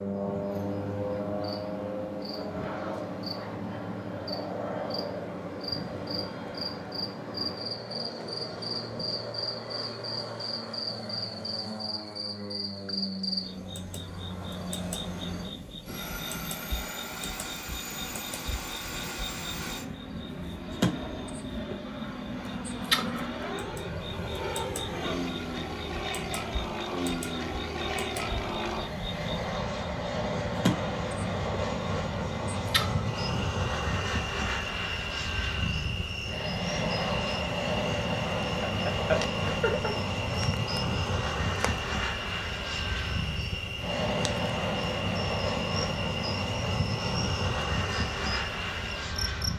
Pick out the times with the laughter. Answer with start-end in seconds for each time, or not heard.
38.6-40.0.